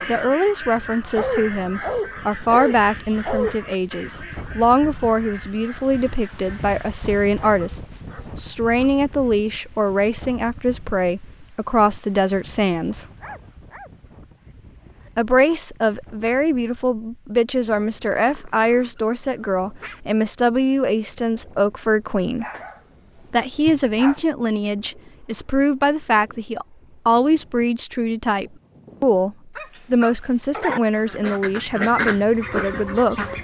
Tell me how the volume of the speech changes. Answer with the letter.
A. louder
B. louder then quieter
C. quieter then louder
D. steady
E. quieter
D.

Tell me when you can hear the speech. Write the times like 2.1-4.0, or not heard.
0.1-13.1, 15.2-22.4, 23.3-33.4.